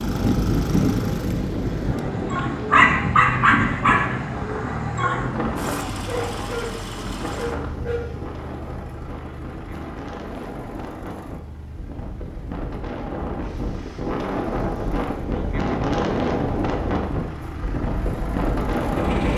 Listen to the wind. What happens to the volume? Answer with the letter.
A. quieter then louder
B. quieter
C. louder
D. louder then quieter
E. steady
A.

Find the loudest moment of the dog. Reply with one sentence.
The loudest moment of the dog is at 3 seconds.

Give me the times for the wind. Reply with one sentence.
The wind can be heard from 0.0 to 19.3 s.